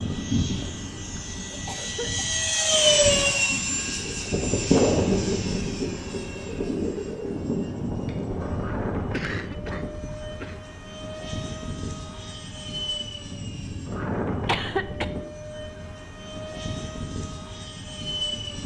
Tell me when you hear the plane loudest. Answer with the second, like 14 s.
3 s.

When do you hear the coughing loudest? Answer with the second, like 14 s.
15 s.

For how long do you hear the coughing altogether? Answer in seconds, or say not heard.
4 s.